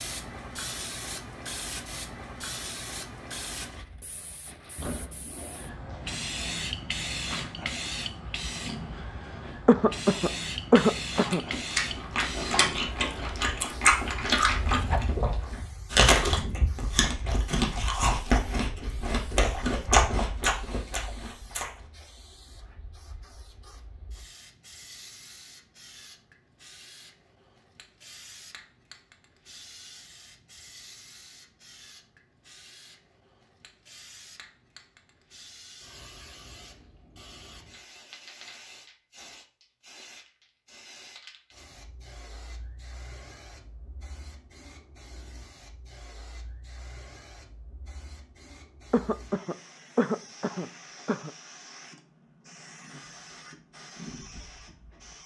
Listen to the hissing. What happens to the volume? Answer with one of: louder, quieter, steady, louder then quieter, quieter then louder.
quieter.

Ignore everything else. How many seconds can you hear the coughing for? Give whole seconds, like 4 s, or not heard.
4 s.